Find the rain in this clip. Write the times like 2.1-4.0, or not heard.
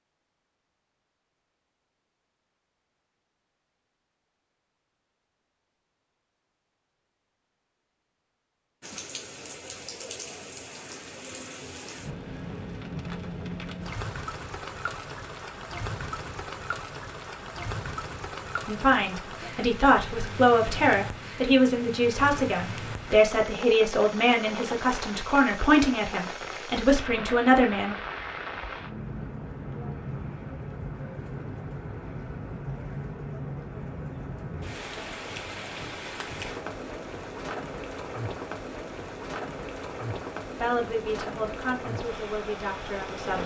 8.8-43.4.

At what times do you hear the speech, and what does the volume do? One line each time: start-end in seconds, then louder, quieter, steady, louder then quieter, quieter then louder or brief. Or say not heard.
18.6-27.9 steady
40.5-43.4 brief.